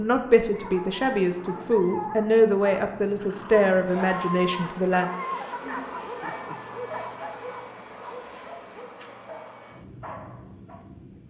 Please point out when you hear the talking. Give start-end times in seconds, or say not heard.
0.0-5.1.